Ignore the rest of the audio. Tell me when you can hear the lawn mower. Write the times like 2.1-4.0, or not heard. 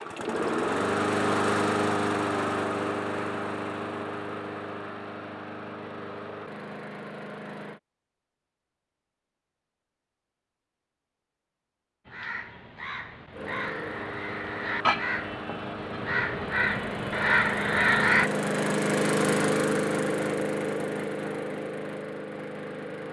0.0-7.8, 13.3-23.0.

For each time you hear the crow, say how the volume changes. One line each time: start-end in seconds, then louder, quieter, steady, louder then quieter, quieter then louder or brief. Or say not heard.
12.1-18.3 louder.